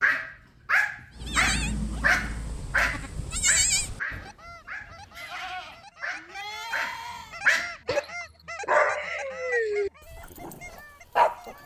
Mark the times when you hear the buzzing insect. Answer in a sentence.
You can't hear the buzzing insect here.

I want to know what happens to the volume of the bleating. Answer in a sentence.
The loudness of the bleating goes up, then down.